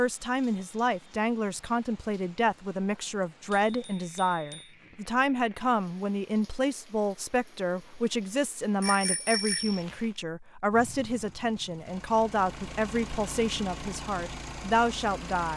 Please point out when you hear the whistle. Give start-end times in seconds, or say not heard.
not heard.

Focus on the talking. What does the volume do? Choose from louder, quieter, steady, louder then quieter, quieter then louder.
steady.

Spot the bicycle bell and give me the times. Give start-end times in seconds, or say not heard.
3.6-4.7, 8.8-9.8.